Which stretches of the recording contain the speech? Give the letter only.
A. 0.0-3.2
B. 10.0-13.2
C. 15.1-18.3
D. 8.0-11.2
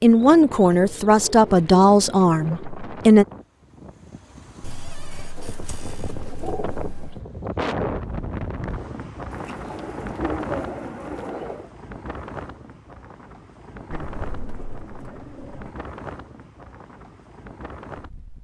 A.